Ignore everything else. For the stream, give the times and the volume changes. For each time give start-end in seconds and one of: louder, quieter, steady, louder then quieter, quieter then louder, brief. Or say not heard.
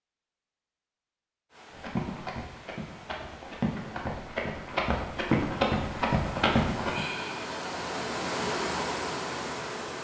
1.5-10.0 louder.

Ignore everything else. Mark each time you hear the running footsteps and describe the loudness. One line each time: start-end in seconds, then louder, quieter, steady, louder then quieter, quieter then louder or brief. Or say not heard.
1.7-7.0 louder.